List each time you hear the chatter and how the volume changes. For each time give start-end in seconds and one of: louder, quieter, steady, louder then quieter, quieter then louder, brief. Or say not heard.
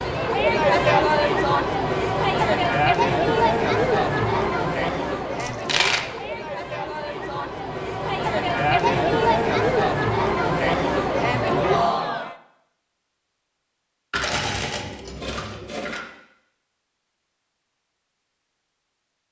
0.0-12.3 quieter then louder.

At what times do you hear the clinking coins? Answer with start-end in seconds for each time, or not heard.
5.4-6.0, 14.1-16.1.